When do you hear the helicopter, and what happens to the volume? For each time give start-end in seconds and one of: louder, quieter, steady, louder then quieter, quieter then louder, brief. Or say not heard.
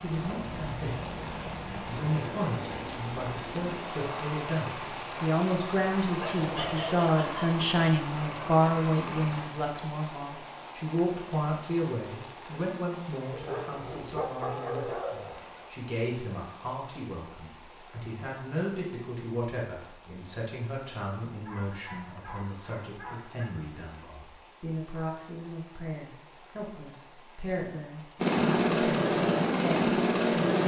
0.0-9.4 steady
28.1-30.6 brief.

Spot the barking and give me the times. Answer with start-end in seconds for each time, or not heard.
6.0-7.6, 13.3-15.7, 21.4-23.4.